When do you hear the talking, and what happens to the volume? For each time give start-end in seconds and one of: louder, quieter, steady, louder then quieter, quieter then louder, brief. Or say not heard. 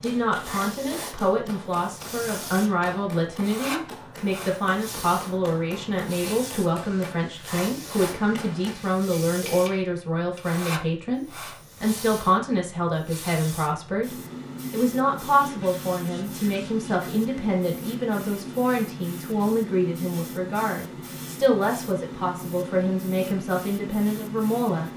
0.0-24.9 steady.